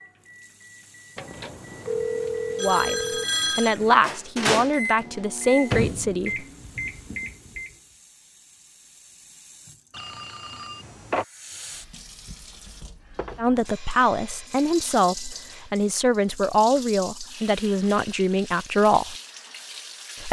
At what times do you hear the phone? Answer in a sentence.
The phone can be heard from 1.1 to 3.8 s, from 9.9 to 11.2 s and from 13.7 to 15.8 s.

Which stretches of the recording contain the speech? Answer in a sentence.
You can hear the speech from 2.6 to 6.5 s and from 13.3 to 19.1 s.